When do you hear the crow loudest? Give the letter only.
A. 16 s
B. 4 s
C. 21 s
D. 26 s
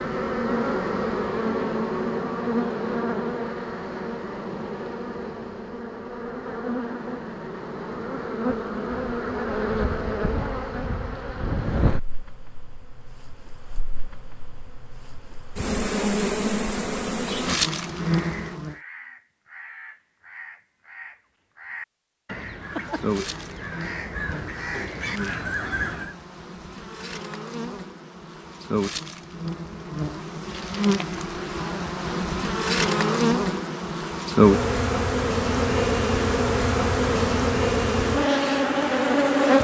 D.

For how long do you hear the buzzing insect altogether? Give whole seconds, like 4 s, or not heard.
36 s.